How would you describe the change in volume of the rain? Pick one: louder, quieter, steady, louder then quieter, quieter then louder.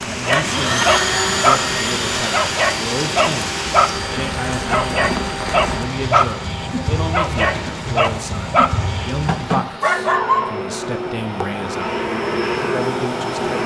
steady.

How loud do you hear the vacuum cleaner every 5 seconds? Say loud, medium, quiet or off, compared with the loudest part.
loud, medium, loud.